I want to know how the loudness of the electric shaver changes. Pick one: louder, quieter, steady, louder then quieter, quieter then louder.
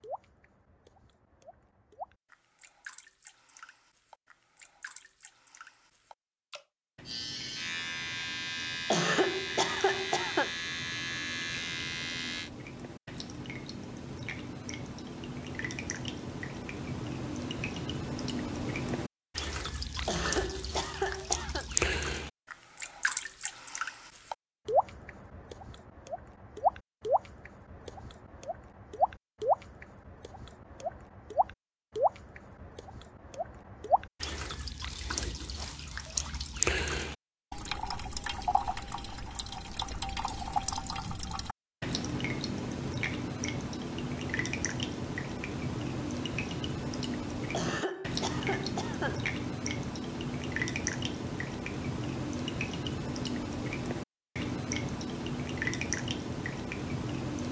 steady.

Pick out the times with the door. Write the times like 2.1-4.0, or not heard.
not heard.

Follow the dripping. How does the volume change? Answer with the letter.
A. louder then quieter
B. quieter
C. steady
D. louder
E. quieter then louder
D.